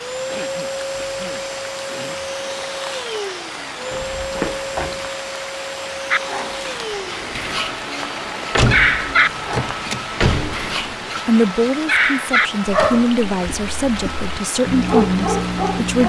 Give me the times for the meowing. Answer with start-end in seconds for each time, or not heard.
not heard.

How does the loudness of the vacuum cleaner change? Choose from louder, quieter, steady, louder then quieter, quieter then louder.
quieter.